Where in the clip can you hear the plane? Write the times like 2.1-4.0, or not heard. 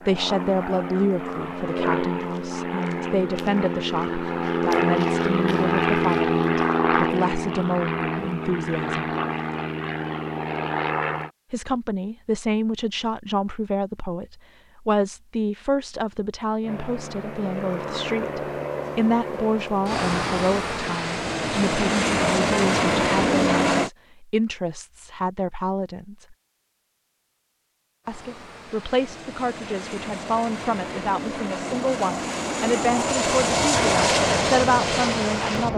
0.0-11.3, 16.6-23.9, 28.1-35.7.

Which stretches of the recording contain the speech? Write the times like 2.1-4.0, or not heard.
0.1-9.1, 11.5-26.4, 28.1-35.7.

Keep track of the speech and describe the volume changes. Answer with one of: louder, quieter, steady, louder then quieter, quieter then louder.
steady.